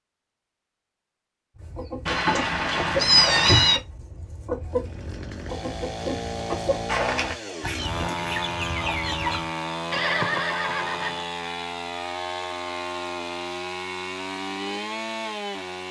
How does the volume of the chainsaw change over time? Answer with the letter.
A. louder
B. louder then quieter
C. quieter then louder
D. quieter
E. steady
E.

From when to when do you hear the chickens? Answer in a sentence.
You can hear the chickens from 1.6 to 9.5 s.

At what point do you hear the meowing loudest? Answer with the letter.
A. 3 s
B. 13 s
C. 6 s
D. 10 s
A.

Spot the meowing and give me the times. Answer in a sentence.
The meowing can be heard from 2.0 to 3.8 s.